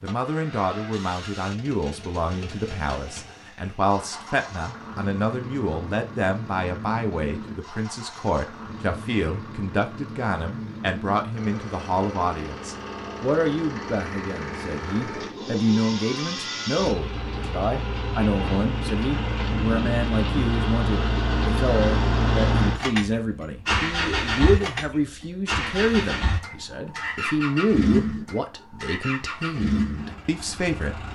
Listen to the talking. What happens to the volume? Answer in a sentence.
The loudness of the talking stays about the same.